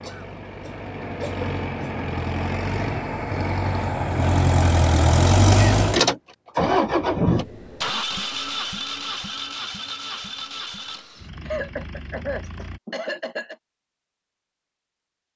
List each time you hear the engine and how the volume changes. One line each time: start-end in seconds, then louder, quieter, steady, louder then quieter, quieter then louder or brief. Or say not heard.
0.0-12.8 louder then quieter.